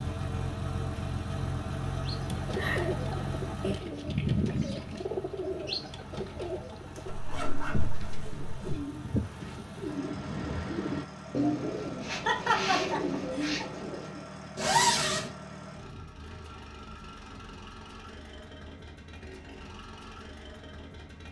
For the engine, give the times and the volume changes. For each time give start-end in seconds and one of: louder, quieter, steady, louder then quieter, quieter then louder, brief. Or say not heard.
0.0-21.2 quieter.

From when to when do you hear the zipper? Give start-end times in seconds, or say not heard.
7.0-8.8, 14.6-15.3.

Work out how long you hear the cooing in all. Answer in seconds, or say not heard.
12 s.